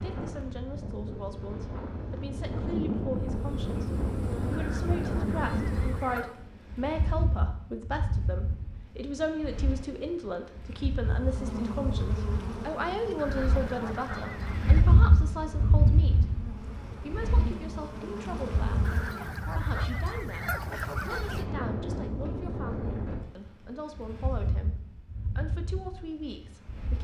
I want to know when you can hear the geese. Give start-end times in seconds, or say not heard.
4.5-6.3, 13.2-14.8, 18.9-21.4.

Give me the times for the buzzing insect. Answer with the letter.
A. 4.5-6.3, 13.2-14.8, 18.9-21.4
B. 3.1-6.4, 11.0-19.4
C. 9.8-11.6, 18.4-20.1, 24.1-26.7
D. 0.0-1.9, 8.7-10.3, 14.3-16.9
B.